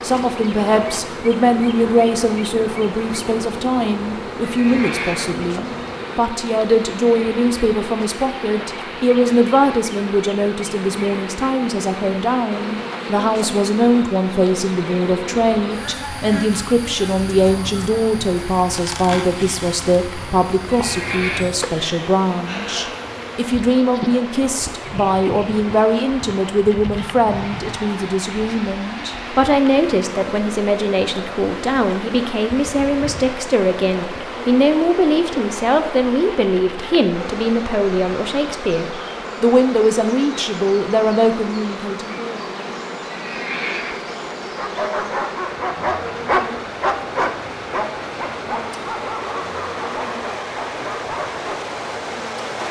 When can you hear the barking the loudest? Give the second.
46 s.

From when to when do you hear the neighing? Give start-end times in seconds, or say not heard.
4.5-5.5, 20.6-21.4, 43.1-44.2.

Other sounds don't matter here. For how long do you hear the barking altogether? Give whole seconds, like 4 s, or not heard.
7 s.